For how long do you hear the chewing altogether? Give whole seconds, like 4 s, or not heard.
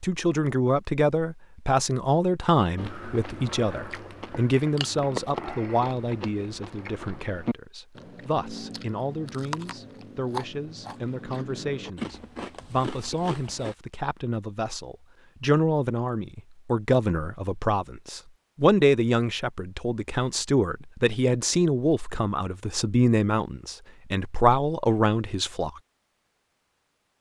11 s.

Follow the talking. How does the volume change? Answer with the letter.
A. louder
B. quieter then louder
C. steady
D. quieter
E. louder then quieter
B.